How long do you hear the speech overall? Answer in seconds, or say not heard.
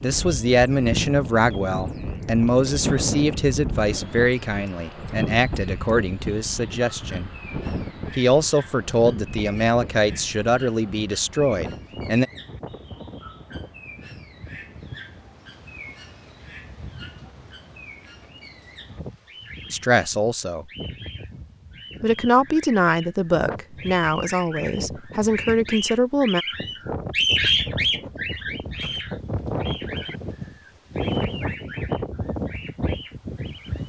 17 s.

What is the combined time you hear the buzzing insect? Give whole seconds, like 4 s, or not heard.
not heard.